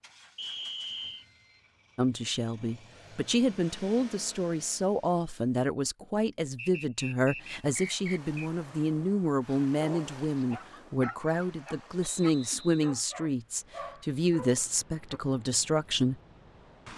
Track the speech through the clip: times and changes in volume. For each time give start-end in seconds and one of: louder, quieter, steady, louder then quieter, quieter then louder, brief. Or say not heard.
1.9-16.2 steady.